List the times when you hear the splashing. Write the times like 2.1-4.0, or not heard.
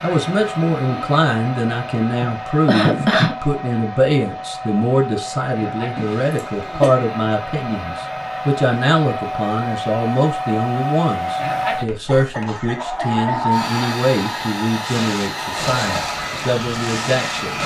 14.8-17.6.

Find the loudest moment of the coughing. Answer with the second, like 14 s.
3 s.